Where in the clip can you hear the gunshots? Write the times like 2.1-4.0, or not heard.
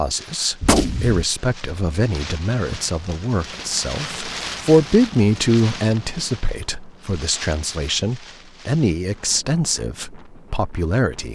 0.6-1.2.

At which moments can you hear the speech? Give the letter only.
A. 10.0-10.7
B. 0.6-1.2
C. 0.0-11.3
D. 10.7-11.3
C.